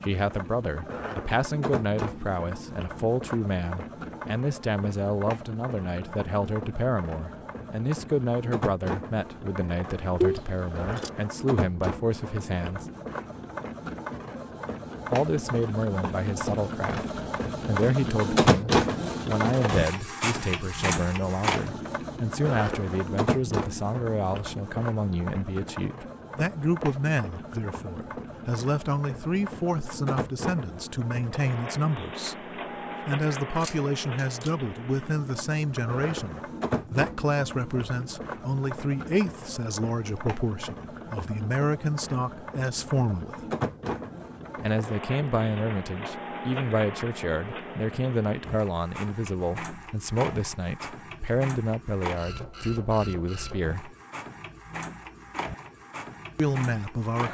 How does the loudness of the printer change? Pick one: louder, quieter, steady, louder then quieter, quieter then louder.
louder then quieter.